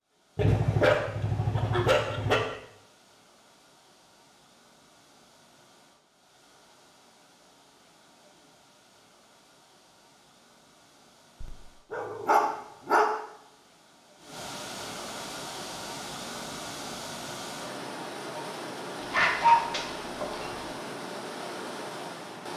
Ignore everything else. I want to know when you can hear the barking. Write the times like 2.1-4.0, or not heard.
0.3-2.4, 11.4-13.1, 19.0-20.6.